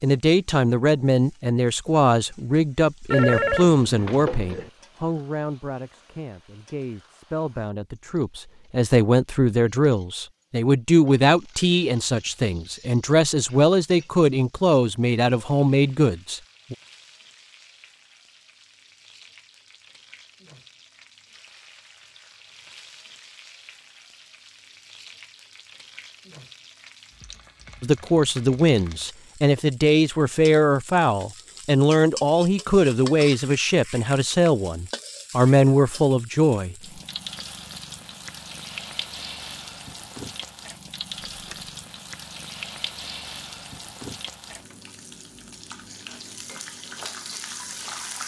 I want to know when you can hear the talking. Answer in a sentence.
The talking can be heard from 0.0 to 16.8 s and from 27.8 to 36.8 s.